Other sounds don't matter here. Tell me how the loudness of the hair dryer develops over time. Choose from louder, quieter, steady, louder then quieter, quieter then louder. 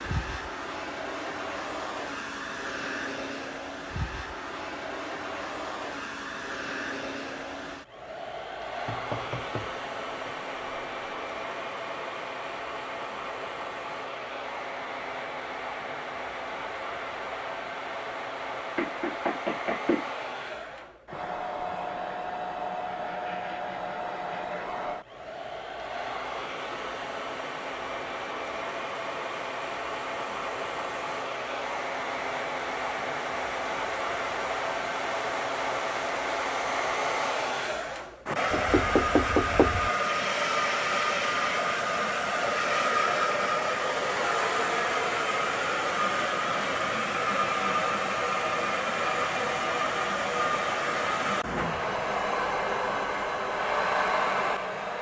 louder.